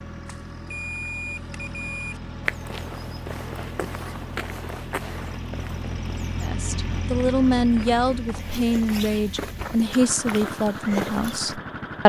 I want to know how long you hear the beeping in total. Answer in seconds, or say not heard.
2 s.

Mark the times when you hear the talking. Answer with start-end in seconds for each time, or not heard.
6.4-12.0.